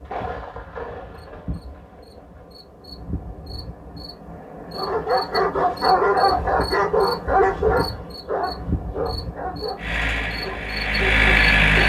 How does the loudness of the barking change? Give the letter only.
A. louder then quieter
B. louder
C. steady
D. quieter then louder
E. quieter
E.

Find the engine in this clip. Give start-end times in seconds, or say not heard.
9.8-11.8.